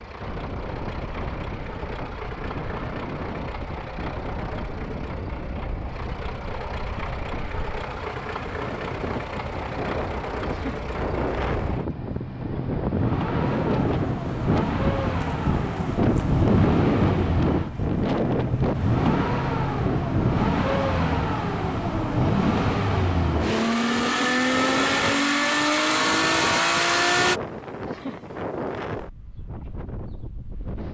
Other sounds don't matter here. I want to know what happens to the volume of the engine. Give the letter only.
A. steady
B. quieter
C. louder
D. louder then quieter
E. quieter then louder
C.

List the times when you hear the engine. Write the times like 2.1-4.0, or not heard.
0.0-27.4.